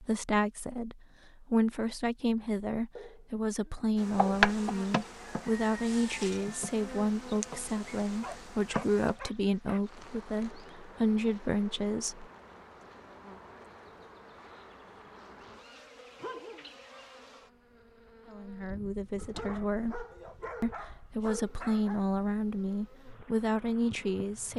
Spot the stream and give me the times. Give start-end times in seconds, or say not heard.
not heard.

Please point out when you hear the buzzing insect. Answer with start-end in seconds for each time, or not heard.
4.0-24.5.